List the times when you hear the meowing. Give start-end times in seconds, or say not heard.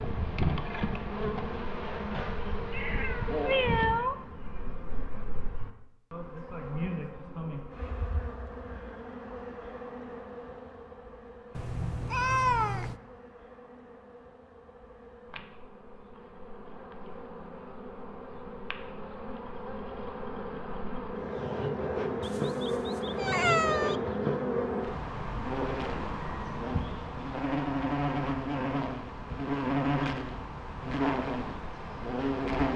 2.7-4.2, 11.6-13.0, 22.2-24.0.